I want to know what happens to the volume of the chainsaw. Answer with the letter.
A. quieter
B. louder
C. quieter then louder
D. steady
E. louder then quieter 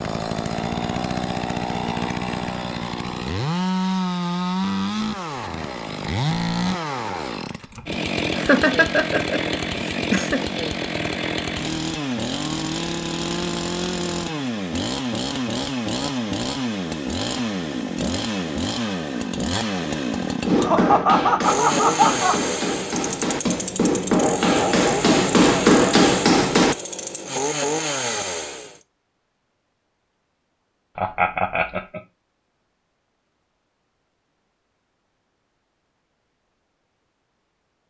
D.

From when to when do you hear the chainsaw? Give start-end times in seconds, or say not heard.
0.0-28.8.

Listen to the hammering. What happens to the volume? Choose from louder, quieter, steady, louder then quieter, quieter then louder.
louder.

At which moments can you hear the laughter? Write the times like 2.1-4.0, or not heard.
7.7-10.4, 20.6-22.4, 30.9-32.0.